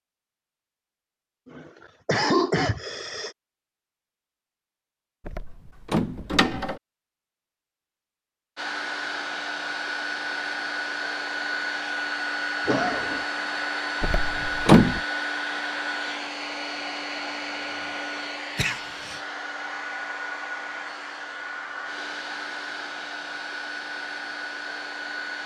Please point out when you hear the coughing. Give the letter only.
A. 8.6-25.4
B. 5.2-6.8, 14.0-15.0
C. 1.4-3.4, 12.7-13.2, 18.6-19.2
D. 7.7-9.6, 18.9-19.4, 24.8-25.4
C.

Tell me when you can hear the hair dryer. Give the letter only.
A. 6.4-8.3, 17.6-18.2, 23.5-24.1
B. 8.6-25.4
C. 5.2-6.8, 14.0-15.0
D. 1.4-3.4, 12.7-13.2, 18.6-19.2
B.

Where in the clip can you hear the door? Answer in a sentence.
The door can be heard from 5.2 to 6.8 s and from 14.0 to 15.0 s.